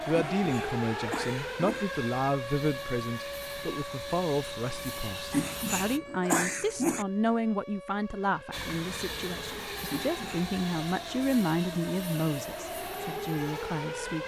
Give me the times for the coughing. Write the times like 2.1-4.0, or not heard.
0.1-1.9, 5.3-7.0, 9.8-10.6.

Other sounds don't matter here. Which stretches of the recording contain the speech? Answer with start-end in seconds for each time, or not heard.
0.1-14.2.